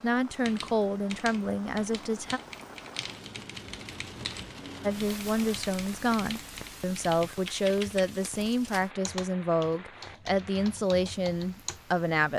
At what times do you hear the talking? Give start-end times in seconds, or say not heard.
0.0-2.4, 4.8-12.3.